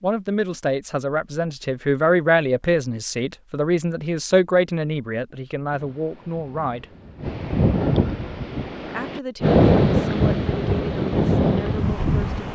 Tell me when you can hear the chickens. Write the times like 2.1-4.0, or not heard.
not heard.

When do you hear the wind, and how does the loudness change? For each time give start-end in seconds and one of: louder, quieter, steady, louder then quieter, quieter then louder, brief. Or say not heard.
5.7-12.5 louder.